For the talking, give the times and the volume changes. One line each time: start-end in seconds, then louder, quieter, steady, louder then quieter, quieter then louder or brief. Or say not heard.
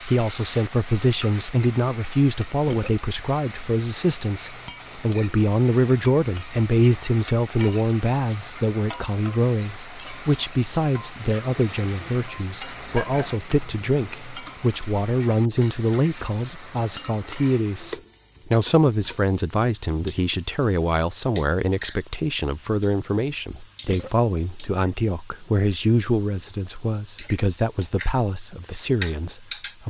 0.0-29.8 steady.